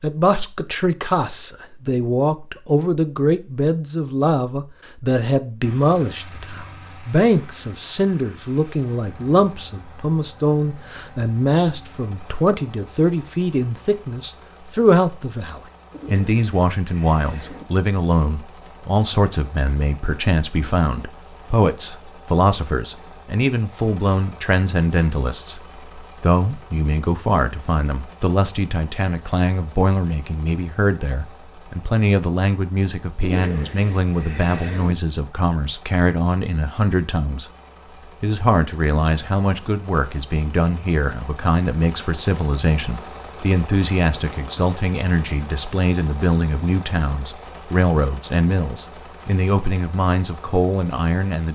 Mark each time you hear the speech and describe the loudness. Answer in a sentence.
The speech can be heard from 0.0 to 25.6 s, at a steady volume; from 26.2 to 37.5 s, at a steady volume; and from 38.2 to 51.5 s, at a steady volume.